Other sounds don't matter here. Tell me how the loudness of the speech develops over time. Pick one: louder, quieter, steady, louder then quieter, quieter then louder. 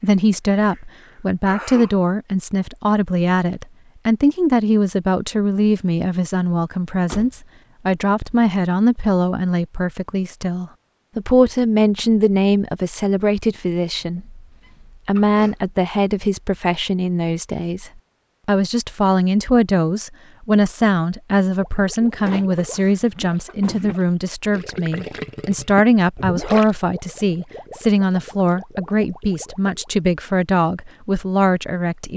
steady.